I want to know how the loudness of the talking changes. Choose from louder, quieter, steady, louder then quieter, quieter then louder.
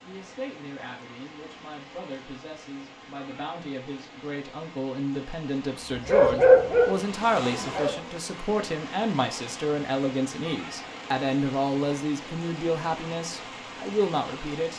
louder.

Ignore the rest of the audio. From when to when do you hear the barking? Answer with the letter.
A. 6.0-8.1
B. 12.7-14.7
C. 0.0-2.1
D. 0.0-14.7
A.